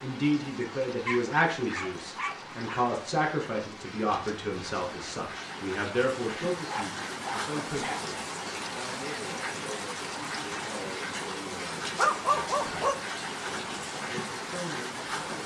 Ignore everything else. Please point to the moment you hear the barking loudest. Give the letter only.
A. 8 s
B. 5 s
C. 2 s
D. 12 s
D.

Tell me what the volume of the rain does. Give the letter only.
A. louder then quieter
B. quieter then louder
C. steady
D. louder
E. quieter
D.